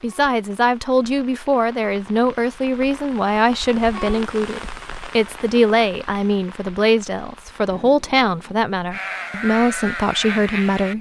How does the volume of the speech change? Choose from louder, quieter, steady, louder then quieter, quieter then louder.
steady.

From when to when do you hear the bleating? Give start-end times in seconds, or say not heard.
8.9-10.9.